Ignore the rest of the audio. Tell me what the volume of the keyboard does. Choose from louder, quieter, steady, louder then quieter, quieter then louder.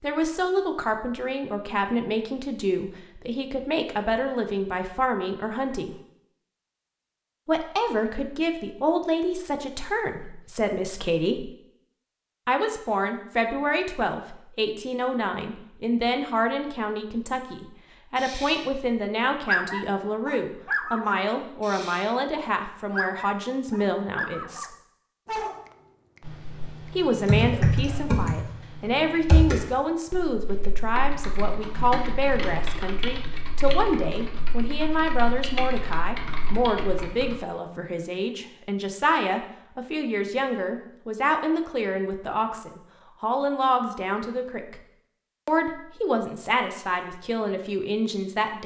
quieter.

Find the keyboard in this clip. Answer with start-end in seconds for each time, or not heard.
26.2-37.4.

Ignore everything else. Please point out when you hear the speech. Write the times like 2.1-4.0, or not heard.
0.0-6.0, 7.5-11.5, 12.4-24.6, 26.9-44.8, 45.5-48.6.